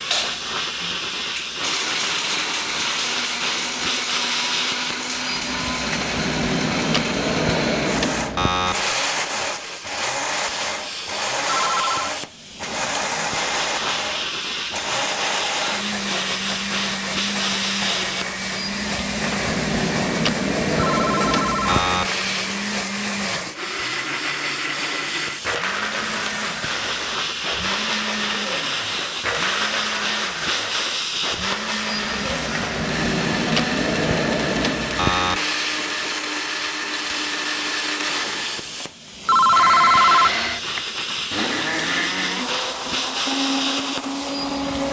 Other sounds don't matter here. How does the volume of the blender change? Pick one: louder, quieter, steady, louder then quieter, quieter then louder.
steady.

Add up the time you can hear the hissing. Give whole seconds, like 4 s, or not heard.
45 s.